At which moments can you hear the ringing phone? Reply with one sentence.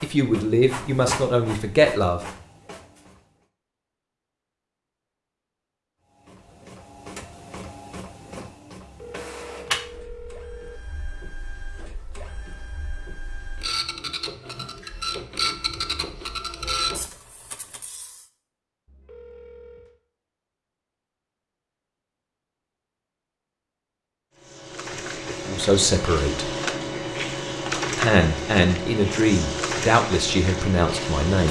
The ringing phone can be heard from 8.8 to 10.8 s and from 18.9 to 20.0 s.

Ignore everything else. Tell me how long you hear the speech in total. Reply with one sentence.
The speech can be heard for 7 seconds in total.